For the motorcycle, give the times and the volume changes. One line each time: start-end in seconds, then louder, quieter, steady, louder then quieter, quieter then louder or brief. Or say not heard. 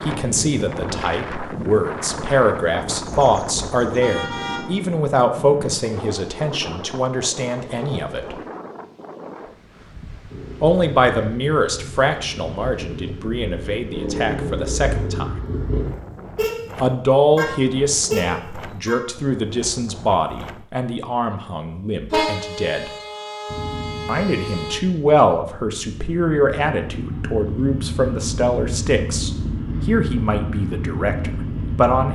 10.3-15.9 louder
23.4-32.0 louder.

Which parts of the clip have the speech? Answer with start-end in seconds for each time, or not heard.
0.0-8.3, 10.6-15.3, 16.8-22.9, 24.1-32.0.